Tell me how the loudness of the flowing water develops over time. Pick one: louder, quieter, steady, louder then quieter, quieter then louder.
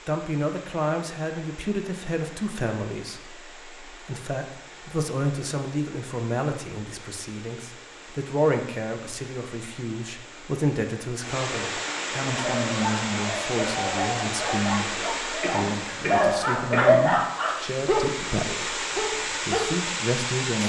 louder.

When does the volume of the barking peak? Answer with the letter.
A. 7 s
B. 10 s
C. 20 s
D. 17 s
D.